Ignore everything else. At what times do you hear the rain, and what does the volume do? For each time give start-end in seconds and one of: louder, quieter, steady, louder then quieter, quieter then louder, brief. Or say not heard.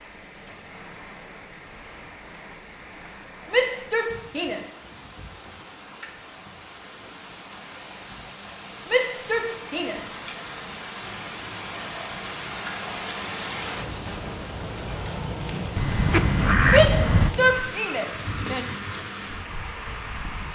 0.0-20.5 louder.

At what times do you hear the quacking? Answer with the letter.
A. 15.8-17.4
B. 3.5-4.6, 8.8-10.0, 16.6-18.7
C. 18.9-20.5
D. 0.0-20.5
A.